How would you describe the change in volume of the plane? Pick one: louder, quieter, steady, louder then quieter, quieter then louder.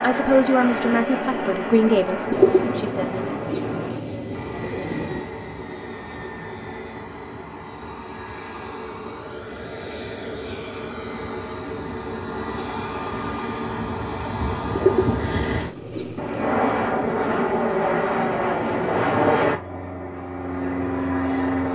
quieter then louder.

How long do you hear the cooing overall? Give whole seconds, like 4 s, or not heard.
6 s.